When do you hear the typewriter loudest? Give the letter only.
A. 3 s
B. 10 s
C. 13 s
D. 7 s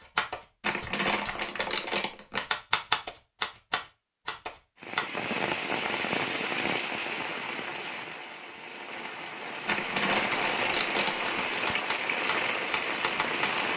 A.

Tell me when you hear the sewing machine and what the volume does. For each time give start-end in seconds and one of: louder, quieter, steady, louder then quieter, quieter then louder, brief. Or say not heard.
not heard.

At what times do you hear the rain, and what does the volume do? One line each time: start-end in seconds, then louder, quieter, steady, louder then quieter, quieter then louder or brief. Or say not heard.
4.8-13.7 quieter then louder.